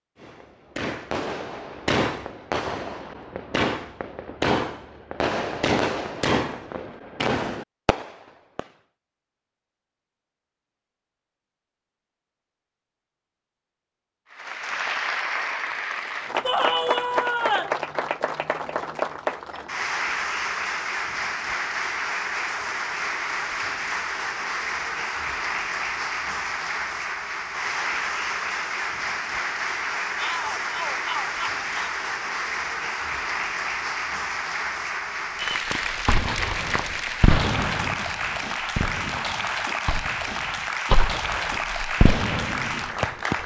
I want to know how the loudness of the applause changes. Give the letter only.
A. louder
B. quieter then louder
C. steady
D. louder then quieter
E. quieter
C.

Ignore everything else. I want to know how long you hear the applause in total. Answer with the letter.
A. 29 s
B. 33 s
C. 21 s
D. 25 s
A.